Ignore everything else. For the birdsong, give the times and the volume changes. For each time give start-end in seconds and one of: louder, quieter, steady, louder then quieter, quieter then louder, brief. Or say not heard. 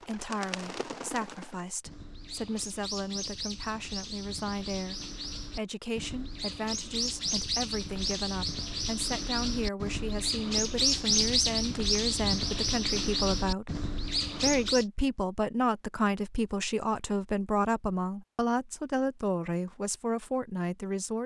0.0-14.8 louder.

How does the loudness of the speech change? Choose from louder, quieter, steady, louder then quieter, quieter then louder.
louder.